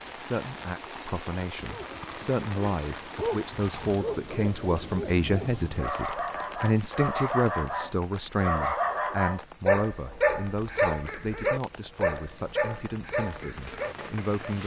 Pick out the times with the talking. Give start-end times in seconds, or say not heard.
0.1-14.6.